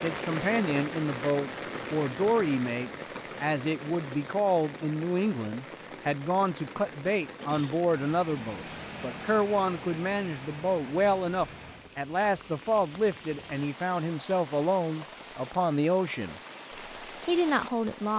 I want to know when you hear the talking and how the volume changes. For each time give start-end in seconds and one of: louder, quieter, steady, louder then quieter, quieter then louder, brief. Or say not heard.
0.0-16.4 steady
17.2-18.1 brief.